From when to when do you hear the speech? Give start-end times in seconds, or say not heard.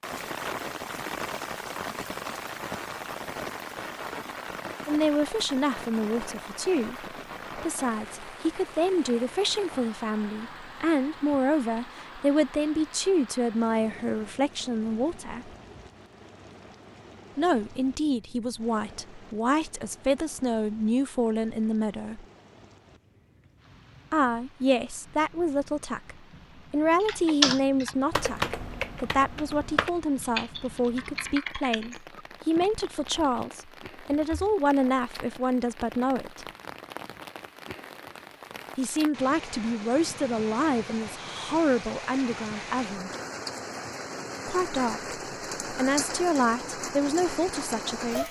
4.8-15.5, 17.4-22.2, 24.1-36.5, 38.8-43.1, 44.5-48.2.